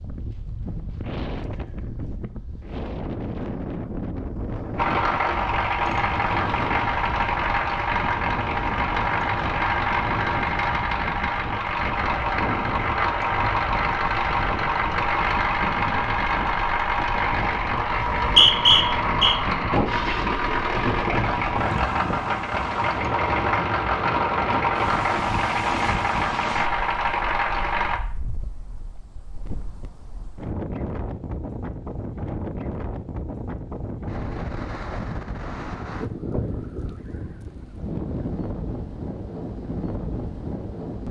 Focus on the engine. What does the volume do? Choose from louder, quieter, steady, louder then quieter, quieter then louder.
steady.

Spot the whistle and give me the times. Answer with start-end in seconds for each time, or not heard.
17.9-19.4.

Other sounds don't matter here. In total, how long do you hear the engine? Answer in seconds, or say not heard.
23 s.